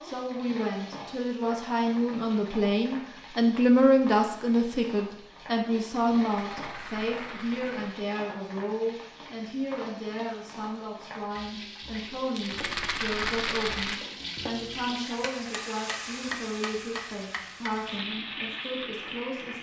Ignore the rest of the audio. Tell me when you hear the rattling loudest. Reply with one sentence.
The loudest moment of the rattling is at 13 seconds.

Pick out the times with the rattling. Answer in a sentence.
You can hear the rattling from 6.2 to 8.0 s and from 12.3 to 14.0 s.